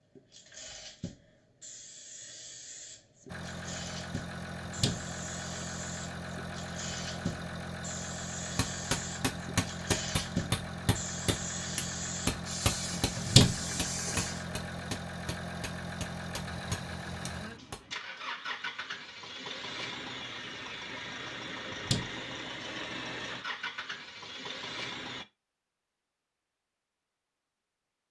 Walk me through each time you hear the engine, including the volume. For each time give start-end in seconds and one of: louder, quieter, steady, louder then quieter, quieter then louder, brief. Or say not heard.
3.2-25.2 steady.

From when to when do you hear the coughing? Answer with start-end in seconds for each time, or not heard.
not heard.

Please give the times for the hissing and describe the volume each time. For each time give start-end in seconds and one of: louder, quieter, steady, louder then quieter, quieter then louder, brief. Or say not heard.
0.0-14.5 louder.